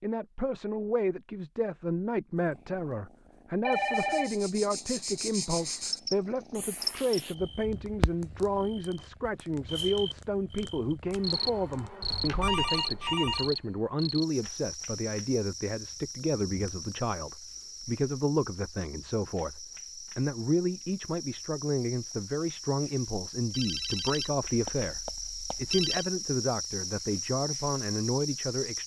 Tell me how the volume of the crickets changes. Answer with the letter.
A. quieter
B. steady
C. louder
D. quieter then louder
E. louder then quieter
D.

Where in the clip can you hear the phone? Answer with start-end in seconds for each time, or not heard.
3.6-4.3, 12.0-13.5, 23.5-26.1.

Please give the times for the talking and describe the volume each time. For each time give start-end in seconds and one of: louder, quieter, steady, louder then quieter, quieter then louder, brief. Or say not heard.
0.0-28.8 steady.